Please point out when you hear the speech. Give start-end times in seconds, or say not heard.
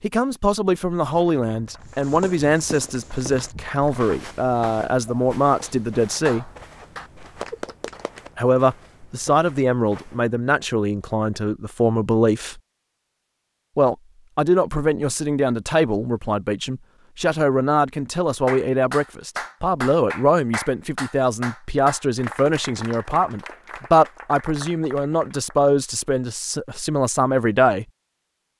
0.0-6.5, 8.3-12.6, 13.8-27.9.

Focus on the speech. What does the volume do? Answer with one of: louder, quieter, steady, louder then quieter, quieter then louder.
steady.